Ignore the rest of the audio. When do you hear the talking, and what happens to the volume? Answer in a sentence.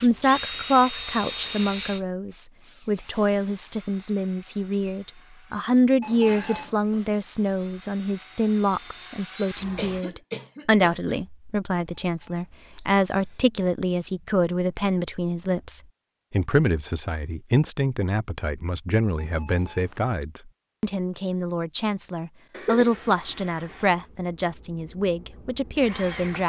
The talking can be heard from 0.0 to 26.4 s, at a steady volume.